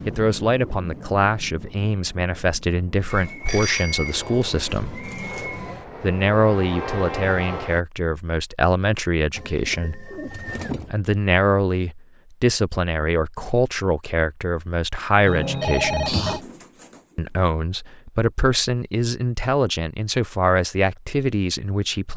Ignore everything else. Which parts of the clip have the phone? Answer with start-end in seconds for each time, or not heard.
3.5-4.5, 15.2-16.4.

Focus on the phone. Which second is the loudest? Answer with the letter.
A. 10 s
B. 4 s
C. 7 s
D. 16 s
D.